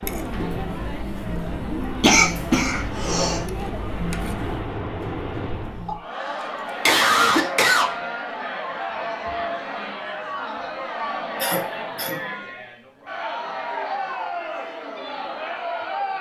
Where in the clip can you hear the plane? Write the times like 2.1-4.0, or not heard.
0.0-6.0.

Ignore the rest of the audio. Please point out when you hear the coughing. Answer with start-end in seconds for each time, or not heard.
2.0-3.5, 5.8-7.8, 11.3-12.2.